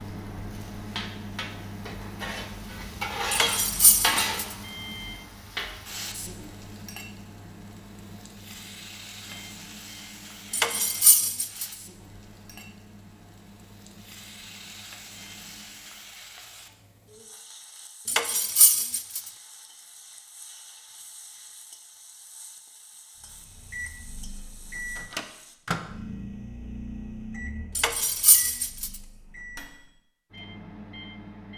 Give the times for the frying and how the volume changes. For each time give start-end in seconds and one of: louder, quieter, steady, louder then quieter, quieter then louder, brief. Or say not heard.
0.0-25.6 quieter.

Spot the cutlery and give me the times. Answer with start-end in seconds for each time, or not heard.
3.3-4.5, 10.5-11.7, 18.1-19.2, 27.8-28.9.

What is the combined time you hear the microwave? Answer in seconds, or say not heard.
24 s.